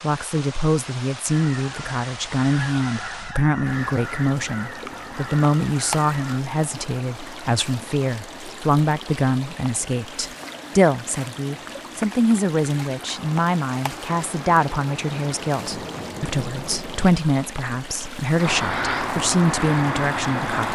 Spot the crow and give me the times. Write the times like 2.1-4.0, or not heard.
1.2-6.5, 18.4-20.6.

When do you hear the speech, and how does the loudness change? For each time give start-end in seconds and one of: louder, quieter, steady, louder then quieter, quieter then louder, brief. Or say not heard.
0.0-20.6 steady.